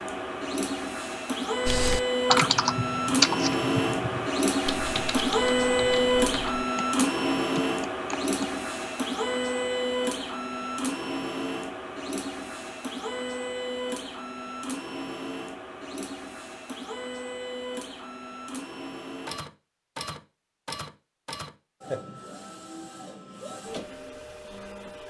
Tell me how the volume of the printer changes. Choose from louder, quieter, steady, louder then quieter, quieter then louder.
quieter.